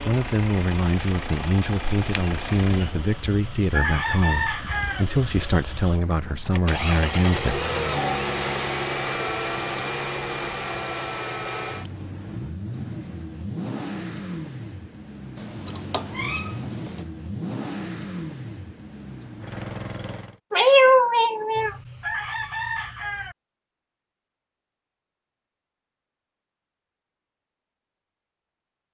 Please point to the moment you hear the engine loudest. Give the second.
8 s.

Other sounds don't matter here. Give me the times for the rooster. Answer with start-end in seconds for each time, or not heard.
3.3-5.0, 21.6-23.4.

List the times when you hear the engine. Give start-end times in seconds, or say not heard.
0.0-20.4.